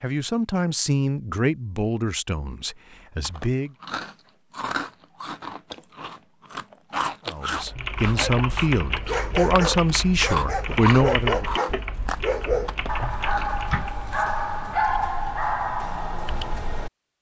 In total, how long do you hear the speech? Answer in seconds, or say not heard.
8 s.